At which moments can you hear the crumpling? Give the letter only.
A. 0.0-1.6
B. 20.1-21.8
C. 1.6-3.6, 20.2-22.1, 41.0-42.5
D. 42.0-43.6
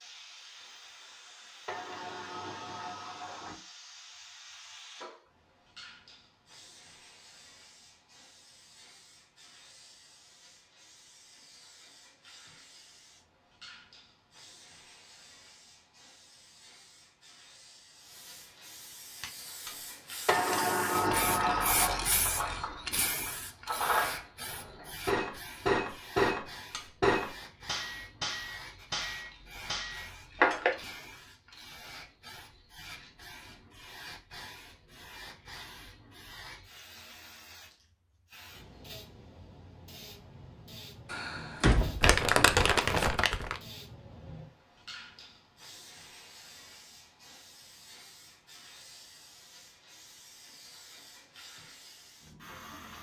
D.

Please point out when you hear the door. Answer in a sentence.
The door can be heard from 1.6 to 3.6 s, from 20.2 to 22.1 s and from 41.0 to 42.5 s.